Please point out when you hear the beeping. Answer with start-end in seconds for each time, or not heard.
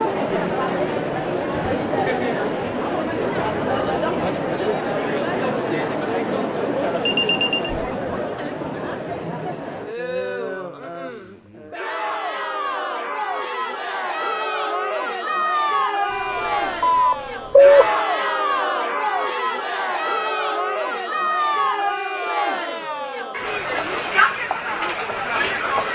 7.0-7.7, 16.1-17.9.